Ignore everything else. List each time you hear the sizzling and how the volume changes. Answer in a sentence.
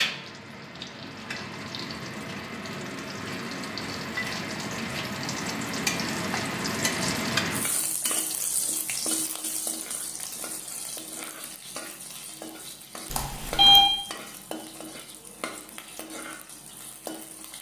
The sizzling can be heard from 0.0 to 17.5 s, getting louder then quieter.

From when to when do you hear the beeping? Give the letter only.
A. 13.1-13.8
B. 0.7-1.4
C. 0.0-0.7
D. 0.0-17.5
A.